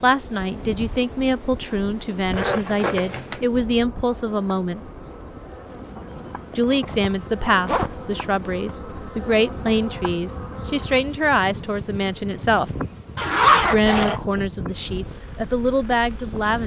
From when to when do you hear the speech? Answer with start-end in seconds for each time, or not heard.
0.0-4.8, 6.5-12.7, 13.7-16.6.